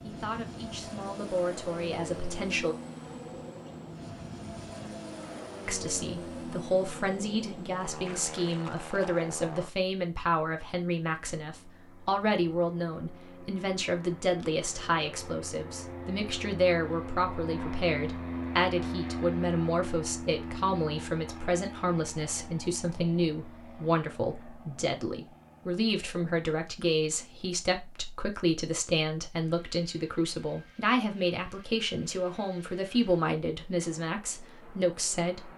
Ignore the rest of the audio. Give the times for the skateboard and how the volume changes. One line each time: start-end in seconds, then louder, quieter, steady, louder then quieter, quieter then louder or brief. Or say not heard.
not heard.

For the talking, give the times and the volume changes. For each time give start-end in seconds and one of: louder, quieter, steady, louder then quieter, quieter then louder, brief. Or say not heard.
0.0-2.8 brief
5.7-35.5 steady.